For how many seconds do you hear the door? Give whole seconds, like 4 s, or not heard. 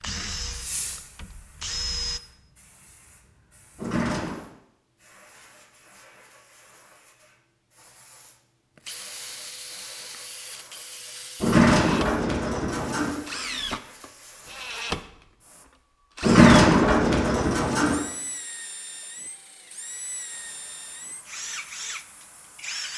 4 s.